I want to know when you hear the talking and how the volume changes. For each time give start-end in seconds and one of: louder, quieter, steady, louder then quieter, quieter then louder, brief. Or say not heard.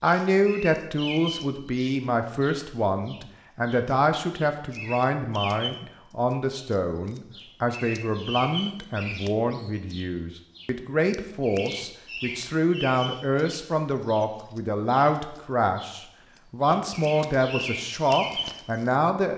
0.0-19.3 steady.